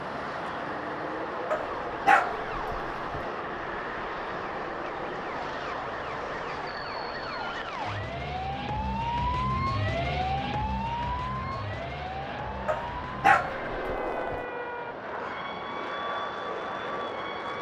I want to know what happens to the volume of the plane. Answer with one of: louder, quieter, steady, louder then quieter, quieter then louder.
quieter then louder.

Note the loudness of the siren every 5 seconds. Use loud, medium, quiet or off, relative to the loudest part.
medium, loud, loud, medium.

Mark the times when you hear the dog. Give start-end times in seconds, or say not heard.
1.5-3.2, 12.7-14.4.